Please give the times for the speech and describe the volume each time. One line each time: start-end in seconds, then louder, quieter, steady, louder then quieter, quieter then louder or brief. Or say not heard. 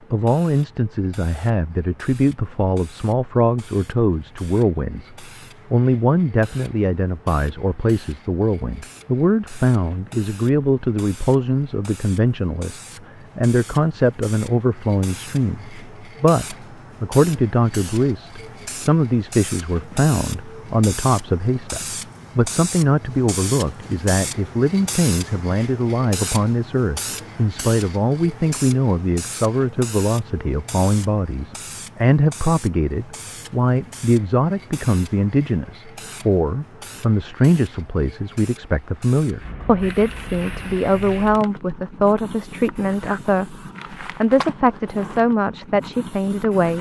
0.1-46.7 steady.